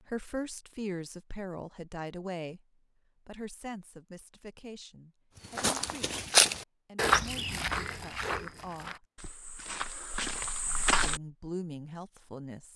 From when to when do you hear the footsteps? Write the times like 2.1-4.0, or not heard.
5.5-11.2.